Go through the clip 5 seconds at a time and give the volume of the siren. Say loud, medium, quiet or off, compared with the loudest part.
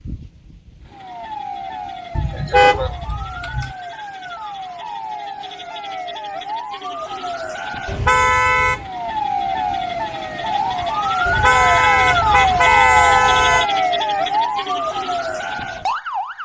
quiet, medium, loud, medium.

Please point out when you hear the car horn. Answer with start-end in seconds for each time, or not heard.
2.1-3.8, 7.8-8.8, 11.2-13.7.